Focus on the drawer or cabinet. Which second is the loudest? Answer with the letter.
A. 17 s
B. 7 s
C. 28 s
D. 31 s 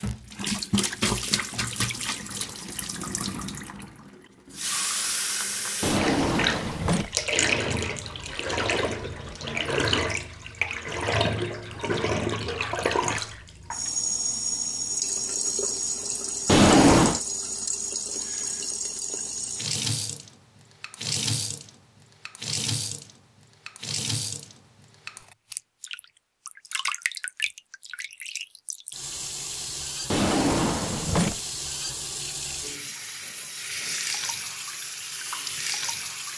A.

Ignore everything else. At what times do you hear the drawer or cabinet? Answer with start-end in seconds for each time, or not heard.
5.8-7.2, 16.4-17.2, 30.1-31.4.